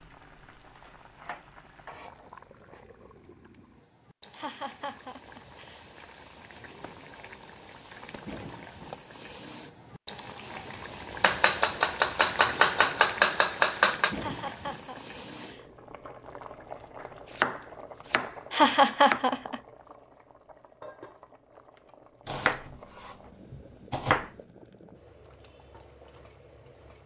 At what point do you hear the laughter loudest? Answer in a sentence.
The volume of the laughter peaks at 19 seconds.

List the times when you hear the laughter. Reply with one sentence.
You can hear the laughter from 4.3 to 5.8 s, from 14.2 to 15.7 s and from 18.5 to 19.6 s.